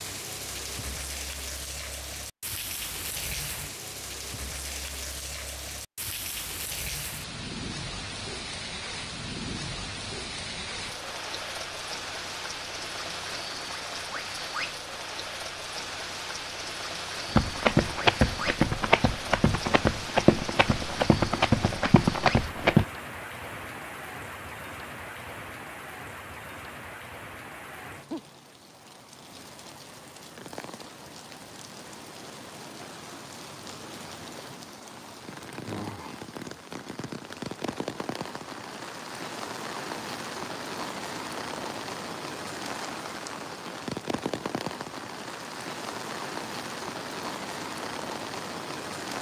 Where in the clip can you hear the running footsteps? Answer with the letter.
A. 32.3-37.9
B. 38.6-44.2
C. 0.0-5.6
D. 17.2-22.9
D.